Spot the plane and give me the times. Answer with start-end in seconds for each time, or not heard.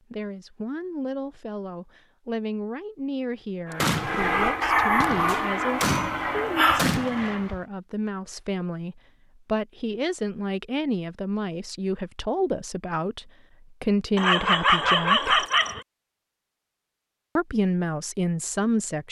3.7-7.5.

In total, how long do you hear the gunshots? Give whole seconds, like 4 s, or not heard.
4 s.